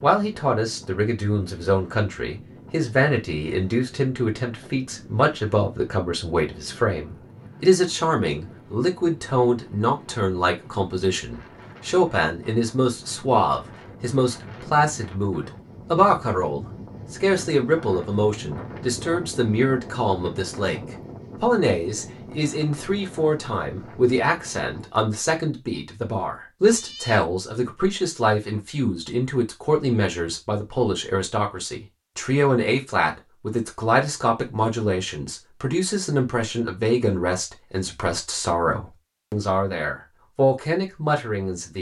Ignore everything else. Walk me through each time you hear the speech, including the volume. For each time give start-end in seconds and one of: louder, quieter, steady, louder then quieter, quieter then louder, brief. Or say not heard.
0.0-41.7 steady.